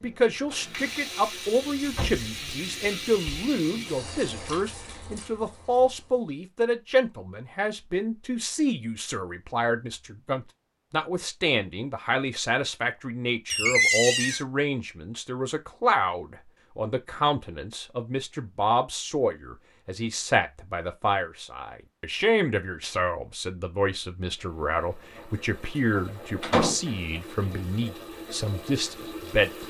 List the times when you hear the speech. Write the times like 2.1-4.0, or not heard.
0.0-29.6.